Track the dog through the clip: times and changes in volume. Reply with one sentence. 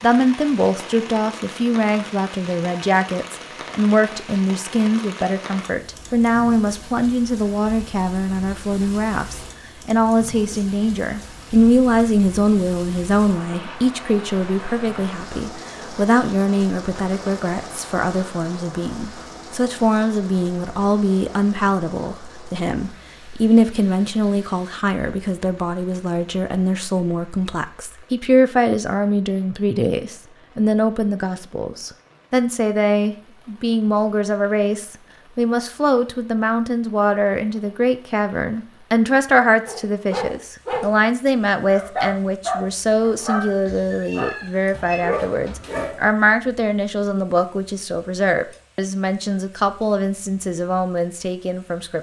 The dog can be heard briefly from 39.6 to 40.9 s; and from 41.6 to 46.0 s, getting quieter then louder.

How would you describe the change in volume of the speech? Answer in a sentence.
The loudness of the speech stays about the same.